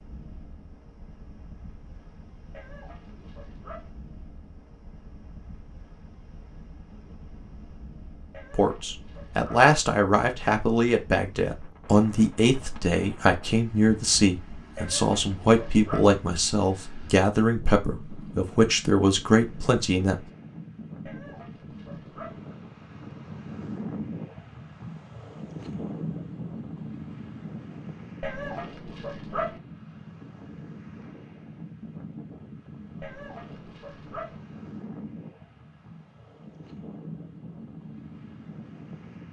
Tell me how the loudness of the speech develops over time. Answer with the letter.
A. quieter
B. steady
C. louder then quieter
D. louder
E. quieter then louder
B.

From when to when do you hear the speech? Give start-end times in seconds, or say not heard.
8.5-20.1.